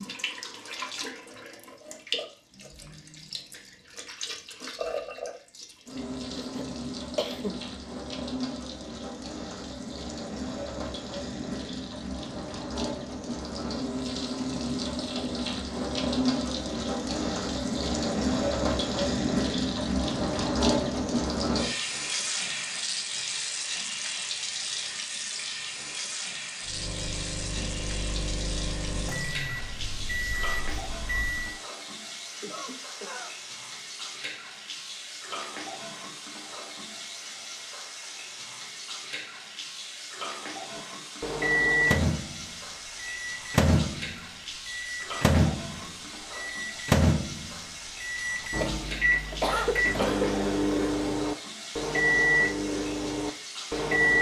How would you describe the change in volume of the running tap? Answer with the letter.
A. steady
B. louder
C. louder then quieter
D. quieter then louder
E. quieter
C.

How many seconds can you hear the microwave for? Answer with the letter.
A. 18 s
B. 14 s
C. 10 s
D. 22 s
A.